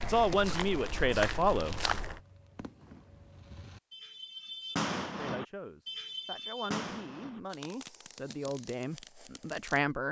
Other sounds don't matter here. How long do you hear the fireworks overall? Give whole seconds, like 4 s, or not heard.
9 s.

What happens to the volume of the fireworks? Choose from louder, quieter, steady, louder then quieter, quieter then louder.
louder then quieter.